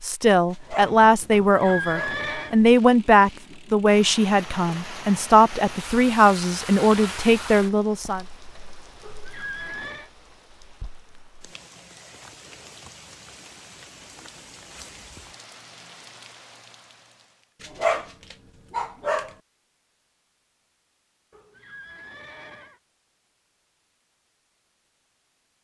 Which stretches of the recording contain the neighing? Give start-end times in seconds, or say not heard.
1.3-2.5, 9.0-10.1, 21.3-22.8.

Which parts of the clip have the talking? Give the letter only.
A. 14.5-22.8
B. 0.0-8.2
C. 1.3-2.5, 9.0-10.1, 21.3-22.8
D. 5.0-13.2
B.